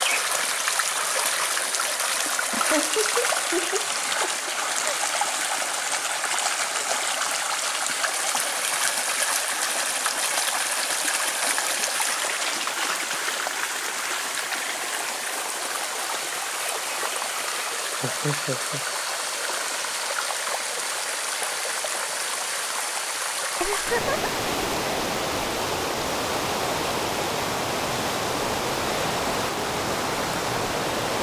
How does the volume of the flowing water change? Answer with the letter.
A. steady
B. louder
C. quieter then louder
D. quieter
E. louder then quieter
A.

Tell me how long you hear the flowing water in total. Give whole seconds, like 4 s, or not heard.
31 s.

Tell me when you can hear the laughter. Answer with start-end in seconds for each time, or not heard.
2.5-5.0, 18.0-18.8, 23.6-24.3.